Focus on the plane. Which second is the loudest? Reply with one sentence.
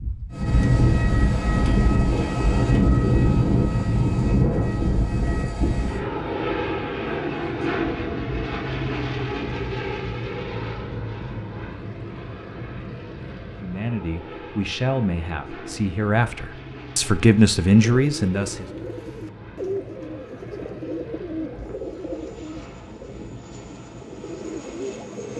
The loudest moment of the plane is at 3 seconds.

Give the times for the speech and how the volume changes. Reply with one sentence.
The speech can be heard from 13.6 to 18.6 s, getting louder.